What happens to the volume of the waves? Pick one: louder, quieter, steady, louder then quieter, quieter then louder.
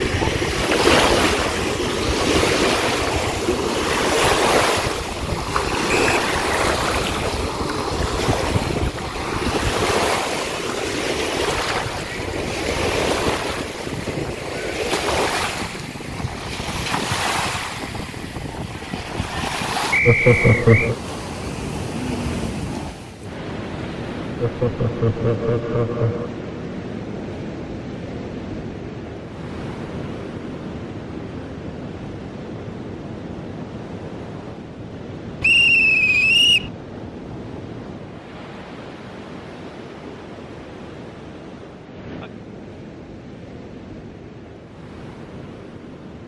quieter.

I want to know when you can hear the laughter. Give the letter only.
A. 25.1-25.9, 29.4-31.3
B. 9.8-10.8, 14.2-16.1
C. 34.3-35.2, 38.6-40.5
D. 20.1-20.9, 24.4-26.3
D.